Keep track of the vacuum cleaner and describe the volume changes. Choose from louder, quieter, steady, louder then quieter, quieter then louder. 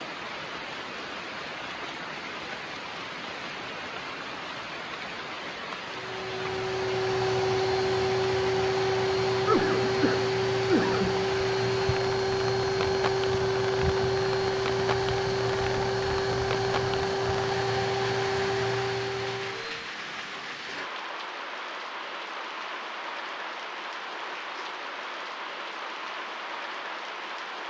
steady.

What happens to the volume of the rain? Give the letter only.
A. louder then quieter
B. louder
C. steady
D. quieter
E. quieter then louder
C.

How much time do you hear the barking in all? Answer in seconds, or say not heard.
not heard.